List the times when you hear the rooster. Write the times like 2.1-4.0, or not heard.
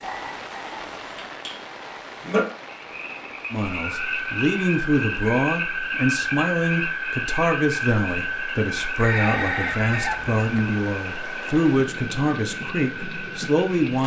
8.9-10.7.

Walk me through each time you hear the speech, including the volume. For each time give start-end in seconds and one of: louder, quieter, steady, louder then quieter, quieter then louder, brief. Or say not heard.
3.5-14.0 steady.